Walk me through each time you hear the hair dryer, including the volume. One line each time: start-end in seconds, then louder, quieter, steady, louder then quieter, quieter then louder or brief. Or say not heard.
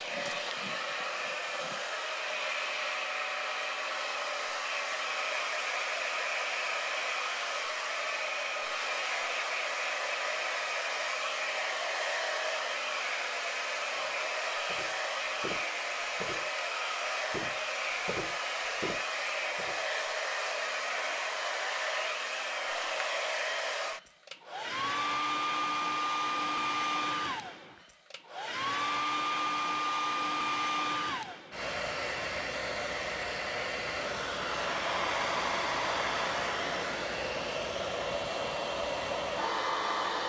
0.0-40.2 steady.